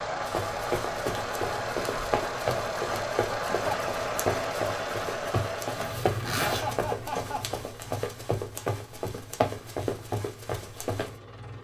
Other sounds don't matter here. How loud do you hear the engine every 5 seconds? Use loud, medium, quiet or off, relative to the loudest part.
loud, medium, quiet.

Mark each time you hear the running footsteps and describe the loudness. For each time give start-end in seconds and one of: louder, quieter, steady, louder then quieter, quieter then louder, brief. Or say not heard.
0.2-11.2 steady.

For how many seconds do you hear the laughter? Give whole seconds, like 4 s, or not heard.
2 s.